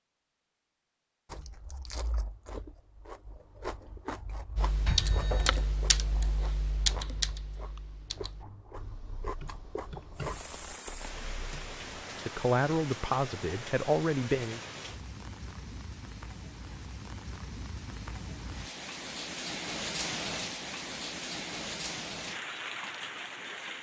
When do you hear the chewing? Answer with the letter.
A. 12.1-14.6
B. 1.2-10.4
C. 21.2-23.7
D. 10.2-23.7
B.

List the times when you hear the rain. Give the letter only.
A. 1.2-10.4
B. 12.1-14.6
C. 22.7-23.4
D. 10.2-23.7
D.